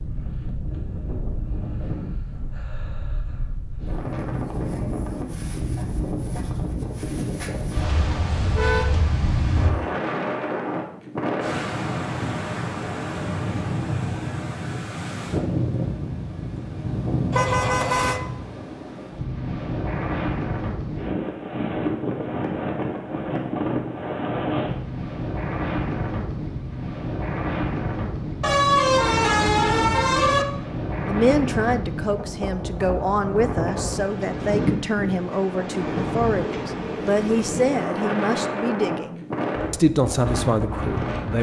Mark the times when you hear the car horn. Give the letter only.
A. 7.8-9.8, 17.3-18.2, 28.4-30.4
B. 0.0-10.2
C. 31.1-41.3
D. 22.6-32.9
A.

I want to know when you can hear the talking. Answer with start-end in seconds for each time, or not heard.
31.1-41.3.